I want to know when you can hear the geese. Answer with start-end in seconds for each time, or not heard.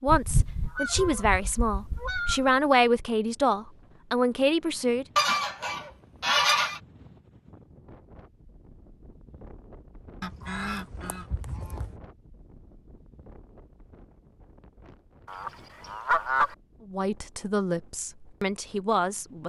0.1-2.5, 5.2-6.8, 10.2-12.0, 15.2-16.6.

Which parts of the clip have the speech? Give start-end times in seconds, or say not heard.
0.0-5.0, 16.9-19.4.